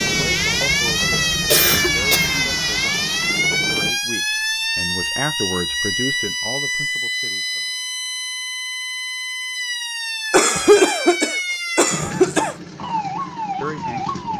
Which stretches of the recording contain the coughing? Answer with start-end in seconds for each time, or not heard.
1.5-2.4, 10.3-12.6.